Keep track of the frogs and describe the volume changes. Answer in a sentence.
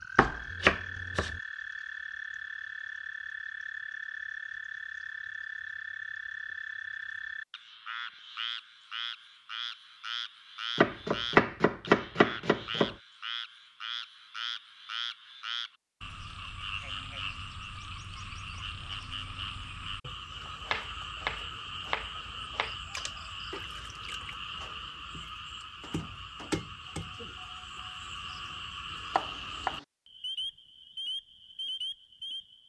The loudness of the frogs stays about the same.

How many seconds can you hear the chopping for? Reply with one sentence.
The chopping can be heard for 6 seconds in total.